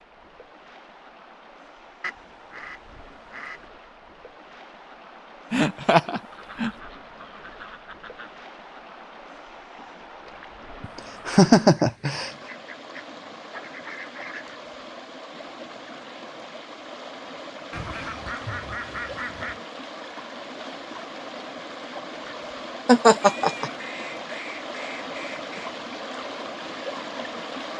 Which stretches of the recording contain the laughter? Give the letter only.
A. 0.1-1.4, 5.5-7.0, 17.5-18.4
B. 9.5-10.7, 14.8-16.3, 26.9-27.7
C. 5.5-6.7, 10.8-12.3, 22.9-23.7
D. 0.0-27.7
C.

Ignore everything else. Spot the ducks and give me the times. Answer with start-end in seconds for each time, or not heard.
2.0-3.6, 6.3-8.3, 11.8-14.5, 17.7-19.6, 23.2-25.7.